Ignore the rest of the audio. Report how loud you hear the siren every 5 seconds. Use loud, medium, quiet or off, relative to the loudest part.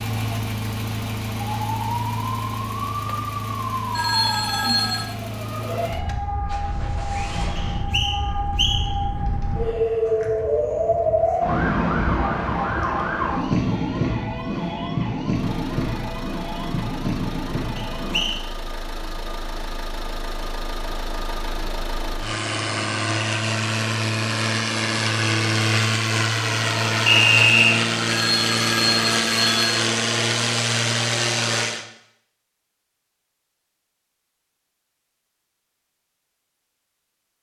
medium, medium, loud, medium, off, off, off, off.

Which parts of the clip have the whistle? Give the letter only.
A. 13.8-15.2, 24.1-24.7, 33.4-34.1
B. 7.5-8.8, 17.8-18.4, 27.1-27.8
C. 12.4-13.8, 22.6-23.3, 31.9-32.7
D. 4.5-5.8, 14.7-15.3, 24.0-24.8
B.